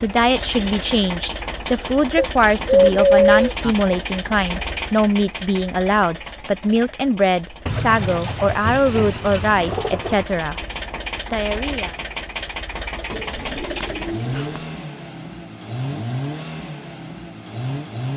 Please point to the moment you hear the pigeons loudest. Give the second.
3 s.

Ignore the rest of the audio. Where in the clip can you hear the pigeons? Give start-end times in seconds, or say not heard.
2.1-3.8, 7.7-10.4, 13.1-14.7.